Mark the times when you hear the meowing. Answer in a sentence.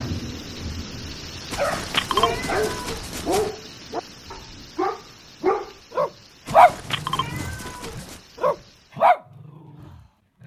The meowing can be heard from 1.5 to 3.5 s and from 6.5 to 8.2 s.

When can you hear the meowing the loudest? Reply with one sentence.
The volume of the meowing peaks at 2 seconds.